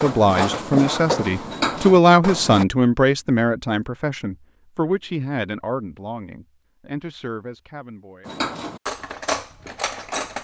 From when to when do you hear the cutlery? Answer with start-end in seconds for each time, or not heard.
0.0-2.6, 8.2-10.3.